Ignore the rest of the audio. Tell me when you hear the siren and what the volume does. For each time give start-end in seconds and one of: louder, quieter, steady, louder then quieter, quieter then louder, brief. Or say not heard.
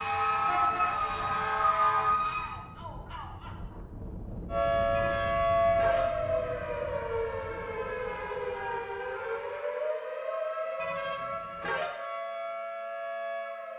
0.0-2.5 brief
4.5-13.7 quieter.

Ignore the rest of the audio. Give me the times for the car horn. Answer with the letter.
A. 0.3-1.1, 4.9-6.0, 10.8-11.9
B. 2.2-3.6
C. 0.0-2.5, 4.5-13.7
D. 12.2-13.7
A.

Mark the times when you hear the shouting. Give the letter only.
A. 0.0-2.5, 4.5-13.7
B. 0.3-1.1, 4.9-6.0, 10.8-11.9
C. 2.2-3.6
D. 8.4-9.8
C.